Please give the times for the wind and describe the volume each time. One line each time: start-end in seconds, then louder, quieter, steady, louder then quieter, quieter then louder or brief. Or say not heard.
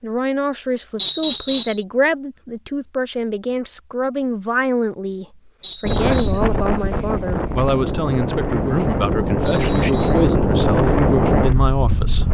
5.8-12.2 louder.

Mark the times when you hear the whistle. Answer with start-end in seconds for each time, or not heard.
0.9-1.9, 5.6-6.5, 9.4-10.3.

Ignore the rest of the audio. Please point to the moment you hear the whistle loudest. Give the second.
1 s.